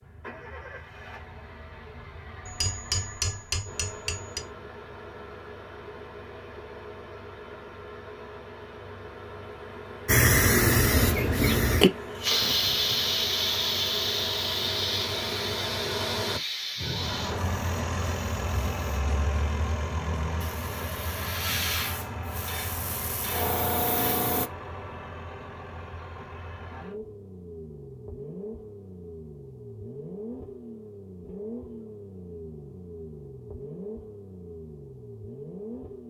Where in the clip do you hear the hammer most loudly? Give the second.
3 s.